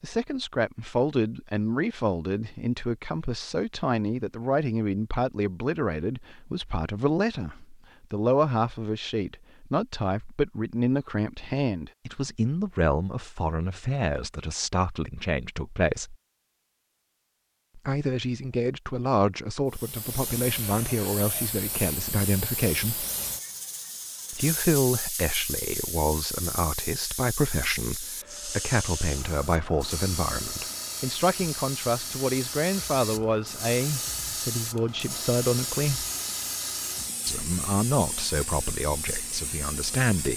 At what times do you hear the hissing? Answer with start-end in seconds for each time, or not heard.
19.6-40.3.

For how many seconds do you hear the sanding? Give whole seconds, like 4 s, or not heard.
not heard.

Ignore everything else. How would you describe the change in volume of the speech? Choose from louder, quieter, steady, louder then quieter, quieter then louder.
steady.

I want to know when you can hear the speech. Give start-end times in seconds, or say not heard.
0.0-16.1, 17.8-23.1, 24.3-36.0, 37.2-40.3.